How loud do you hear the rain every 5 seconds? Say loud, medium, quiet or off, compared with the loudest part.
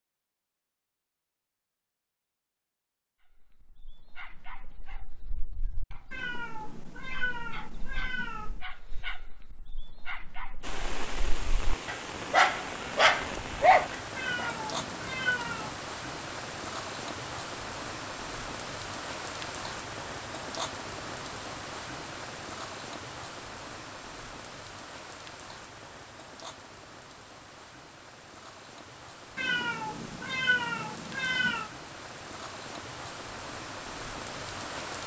off, off, loud, loud, loud, medium, loud.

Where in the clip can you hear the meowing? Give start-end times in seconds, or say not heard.
6.1-8.6, 14.2-15.8, 29.4-31.7.